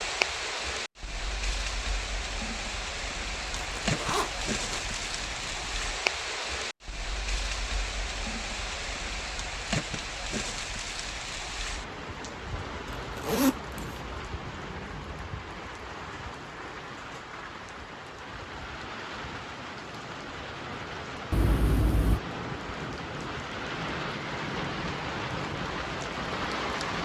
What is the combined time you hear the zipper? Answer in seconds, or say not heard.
4 s.